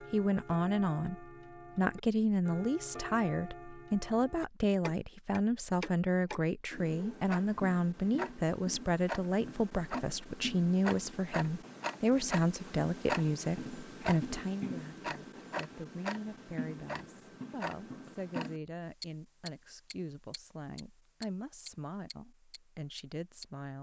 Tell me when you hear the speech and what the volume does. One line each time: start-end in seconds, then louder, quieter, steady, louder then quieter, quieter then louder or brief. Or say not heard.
0.1-23.7 quieter.